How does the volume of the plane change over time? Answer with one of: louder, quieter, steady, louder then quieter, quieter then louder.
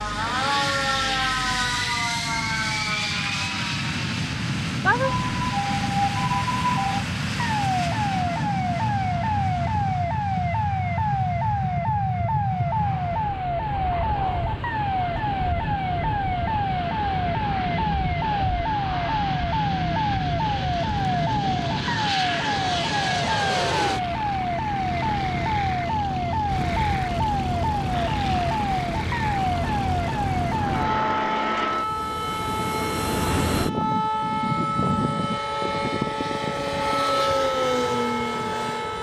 steady.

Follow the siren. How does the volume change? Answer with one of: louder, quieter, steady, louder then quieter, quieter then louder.
steady.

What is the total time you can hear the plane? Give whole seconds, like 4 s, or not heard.
39 s.